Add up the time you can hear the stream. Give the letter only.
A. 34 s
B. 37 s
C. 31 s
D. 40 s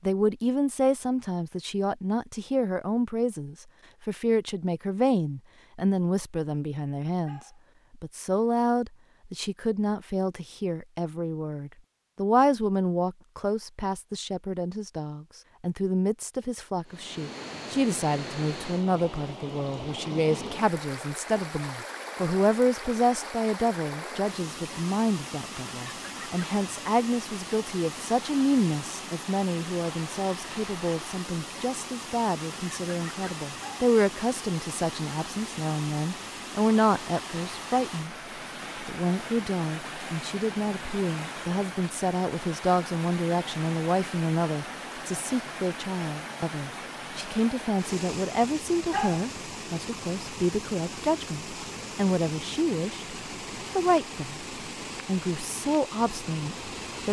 D.